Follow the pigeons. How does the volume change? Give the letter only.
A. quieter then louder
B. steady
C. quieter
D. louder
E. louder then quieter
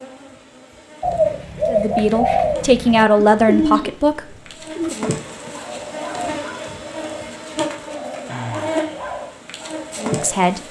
C.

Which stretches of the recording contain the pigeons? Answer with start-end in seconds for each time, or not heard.
1.0-10.3.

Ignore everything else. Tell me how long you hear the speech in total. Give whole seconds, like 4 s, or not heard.
4 s.